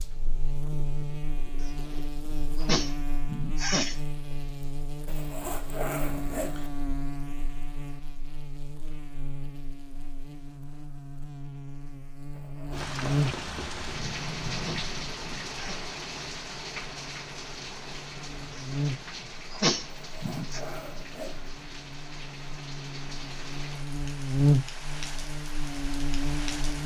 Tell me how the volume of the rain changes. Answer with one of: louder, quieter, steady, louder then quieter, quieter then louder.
quieter.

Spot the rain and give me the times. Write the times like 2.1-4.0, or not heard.
12.7-26.8.